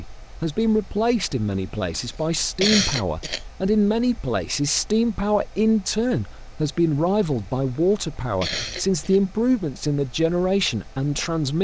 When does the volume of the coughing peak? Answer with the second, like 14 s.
3 s.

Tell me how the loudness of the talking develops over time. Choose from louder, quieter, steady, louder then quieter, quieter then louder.
steady.